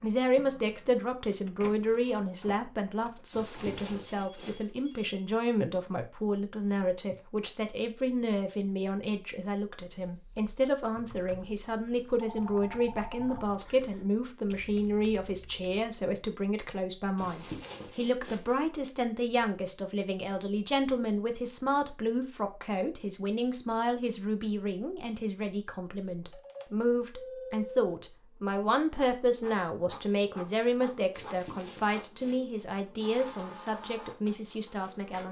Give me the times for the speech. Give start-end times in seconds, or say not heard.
0.0-35.2.